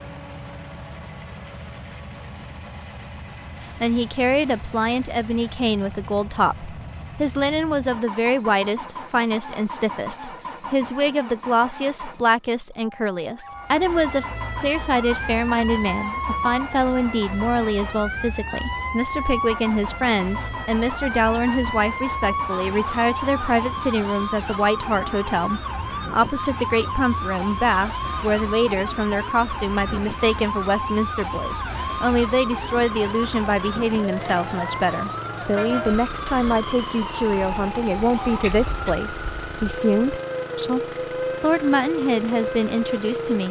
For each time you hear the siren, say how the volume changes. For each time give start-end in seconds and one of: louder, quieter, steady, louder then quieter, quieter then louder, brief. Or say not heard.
13.4-43.4 steady.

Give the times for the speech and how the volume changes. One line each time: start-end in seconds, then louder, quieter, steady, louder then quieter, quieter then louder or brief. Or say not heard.
3.8-40.8 steady
41.4-43.4 brief.